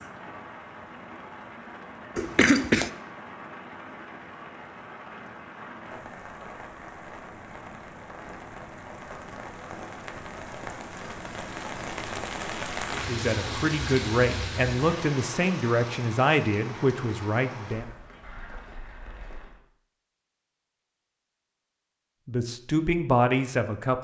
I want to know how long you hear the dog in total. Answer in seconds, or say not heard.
not heard.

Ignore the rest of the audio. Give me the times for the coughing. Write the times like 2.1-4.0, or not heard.
2.1-2.9.